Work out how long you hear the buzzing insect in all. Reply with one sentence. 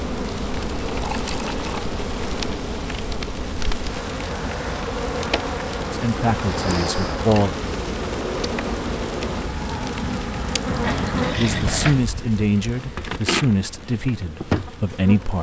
You can hear the buzzing insect for 15 seconds altogether.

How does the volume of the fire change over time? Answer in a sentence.
The volume of the fire goes down.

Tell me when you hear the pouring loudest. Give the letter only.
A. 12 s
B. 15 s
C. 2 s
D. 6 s
A.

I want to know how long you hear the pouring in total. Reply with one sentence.
The pouring can be heard for 2 seconds in total.